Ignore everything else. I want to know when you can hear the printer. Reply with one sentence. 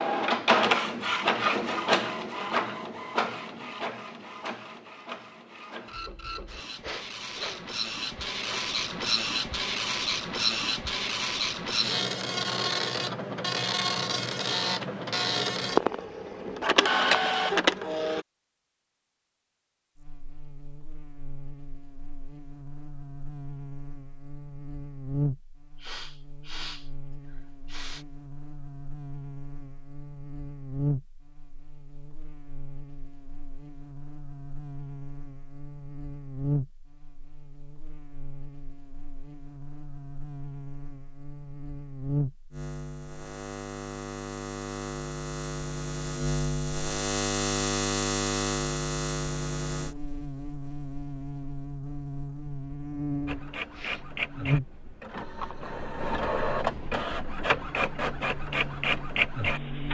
You can hear the printer from 0.0 to 18.2 s and from 53.2 to 59.8 s.